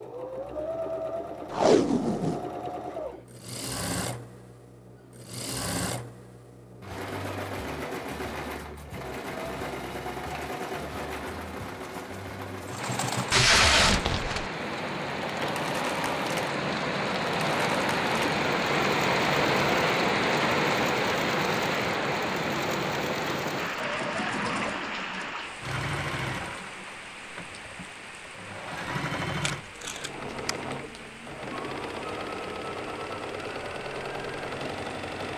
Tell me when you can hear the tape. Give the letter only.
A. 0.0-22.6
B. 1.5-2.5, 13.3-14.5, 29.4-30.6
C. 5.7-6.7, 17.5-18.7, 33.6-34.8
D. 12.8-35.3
B.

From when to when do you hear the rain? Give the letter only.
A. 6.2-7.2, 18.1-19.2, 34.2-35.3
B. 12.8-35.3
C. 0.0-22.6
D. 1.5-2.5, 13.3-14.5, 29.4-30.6
B.